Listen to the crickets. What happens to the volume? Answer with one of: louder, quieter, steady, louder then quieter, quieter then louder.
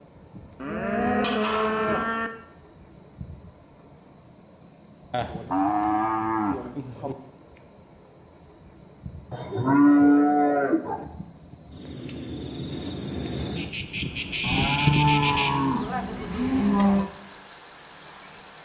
louder.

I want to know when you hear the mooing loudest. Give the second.
10 s.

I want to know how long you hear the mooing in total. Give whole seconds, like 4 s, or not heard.
8 s.